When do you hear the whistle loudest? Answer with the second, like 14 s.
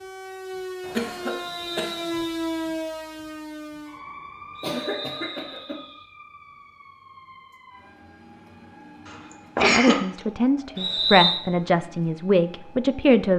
11 s.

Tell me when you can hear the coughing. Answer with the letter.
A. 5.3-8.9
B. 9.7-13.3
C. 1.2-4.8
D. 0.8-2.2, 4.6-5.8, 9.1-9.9
D.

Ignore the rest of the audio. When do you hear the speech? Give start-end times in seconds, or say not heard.
9.7-13.3.